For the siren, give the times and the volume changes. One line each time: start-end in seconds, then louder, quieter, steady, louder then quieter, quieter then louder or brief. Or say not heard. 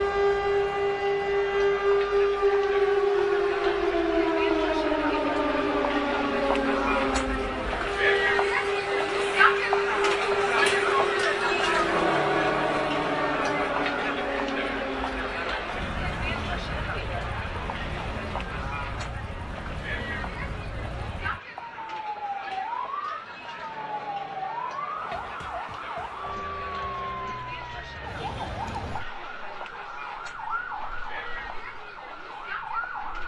0.0-33.2 quieter.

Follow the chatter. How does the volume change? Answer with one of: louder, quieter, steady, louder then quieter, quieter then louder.
louder then quieter.